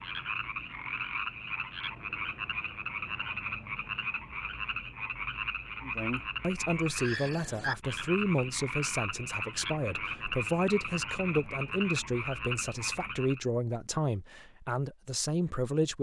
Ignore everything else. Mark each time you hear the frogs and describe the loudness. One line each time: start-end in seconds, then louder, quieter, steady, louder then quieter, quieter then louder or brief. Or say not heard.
0.0-13.4 steady.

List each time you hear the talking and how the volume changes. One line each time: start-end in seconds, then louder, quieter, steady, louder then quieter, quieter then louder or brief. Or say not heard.
5.8-15.9 steady.